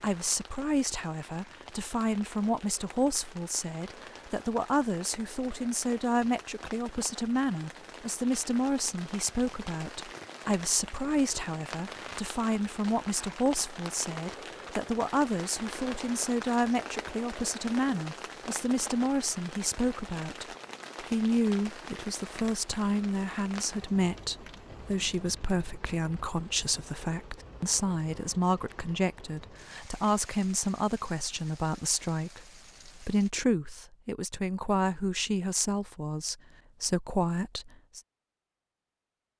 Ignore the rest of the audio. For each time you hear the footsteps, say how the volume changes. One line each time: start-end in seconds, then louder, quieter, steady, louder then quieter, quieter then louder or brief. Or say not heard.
not heard.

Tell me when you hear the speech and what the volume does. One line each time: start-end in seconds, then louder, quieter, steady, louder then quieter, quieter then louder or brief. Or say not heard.
0.0-38.0 steady.